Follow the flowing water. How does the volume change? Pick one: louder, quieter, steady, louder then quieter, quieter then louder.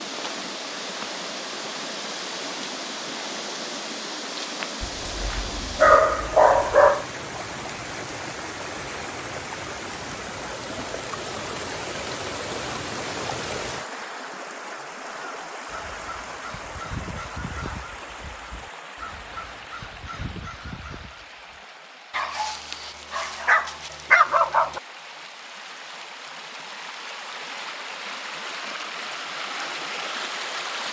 quieter then louder.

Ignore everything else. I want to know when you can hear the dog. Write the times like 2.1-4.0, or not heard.
4.8-7.0, 22.1-24.8.